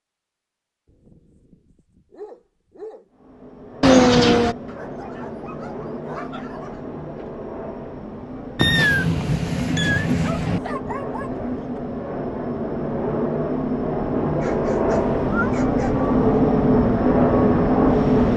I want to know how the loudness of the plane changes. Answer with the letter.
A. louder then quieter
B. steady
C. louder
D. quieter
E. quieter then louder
C.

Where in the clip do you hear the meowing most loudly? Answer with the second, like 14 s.
4 s.